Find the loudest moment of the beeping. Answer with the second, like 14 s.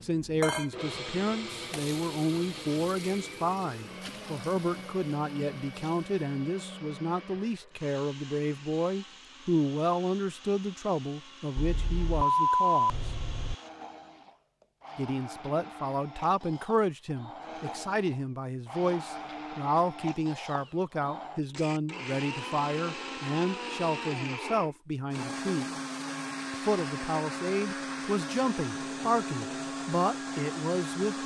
12 s.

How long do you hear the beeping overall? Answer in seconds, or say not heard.
2 s.